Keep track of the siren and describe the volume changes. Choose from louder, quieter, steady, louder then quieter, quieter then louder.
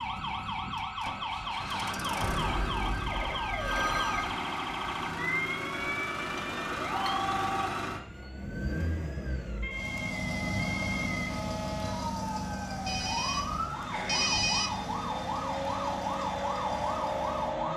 quieter then louder.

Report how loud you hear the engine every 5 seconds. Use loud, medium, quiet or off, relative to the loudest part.
loud, loud, loud, medium.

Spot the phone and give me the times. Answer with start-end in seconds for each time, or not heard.
2.2-4.3, 6.3-7.7, 12.8-14.7.